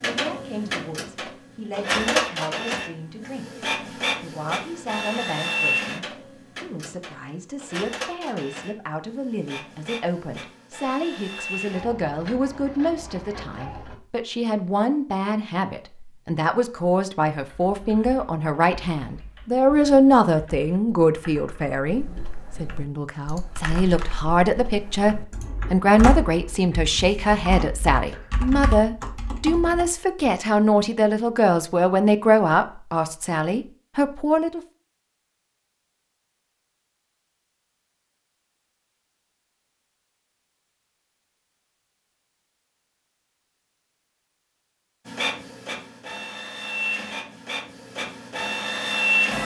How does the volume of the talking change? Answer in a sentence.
The loudness of the talking goes up.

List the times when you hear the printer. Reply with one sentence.
The printer can be heard from 0.0 to 13.9 s and from 45.0 to 49.3 s.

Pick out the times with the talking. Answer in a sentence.
The talking can be heard from 0.0 to 34.6 s.